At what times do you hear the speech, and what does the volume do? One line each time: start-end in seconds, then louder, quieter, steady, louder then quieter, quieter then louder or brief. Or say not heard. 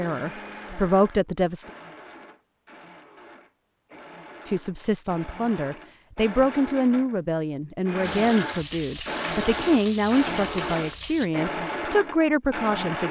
0.0-1.6 brief
4.5-13.0 steady.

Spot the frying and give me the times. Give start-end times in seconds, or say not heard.
8.0-11.3.